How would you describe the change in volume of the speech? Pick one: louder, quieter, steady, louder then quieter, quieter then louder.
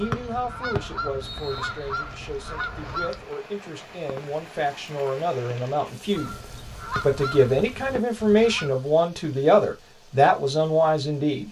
louder.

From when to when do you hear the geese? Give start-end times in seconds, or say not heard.
0.0-3.3, 6.0-8.8.